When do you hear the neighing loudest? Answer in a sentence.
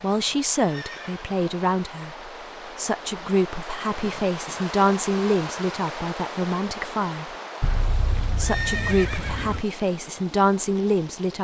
The loudest moment of the neighing is at 9 seconds.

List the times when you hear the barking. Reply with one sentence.
The barking can't be heard in this clip.